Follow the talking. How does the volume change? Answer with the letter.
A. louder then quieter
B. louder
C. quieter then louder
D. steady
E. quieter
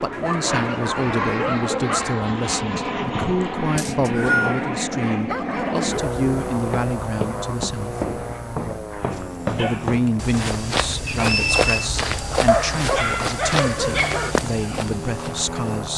D.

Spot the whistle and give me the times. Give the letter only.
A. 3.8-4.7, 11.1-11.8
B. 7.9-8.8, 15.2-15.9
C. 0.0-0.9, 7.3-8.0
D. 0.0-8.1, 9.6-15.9
A.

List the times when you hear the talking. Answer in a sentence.
You can hear the talking from 0.0 to 8.1 s and from 9.6 to 15.9 s.